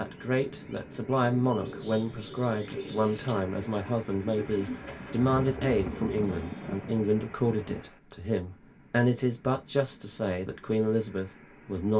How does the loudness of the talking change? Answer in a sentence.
The loudness of the talking stays about the same.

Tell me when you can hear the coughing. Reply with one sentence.
The coughing can't be heard in this clip.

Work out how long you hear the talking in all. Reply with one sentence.
The talking can be heard for 12 seconds in total.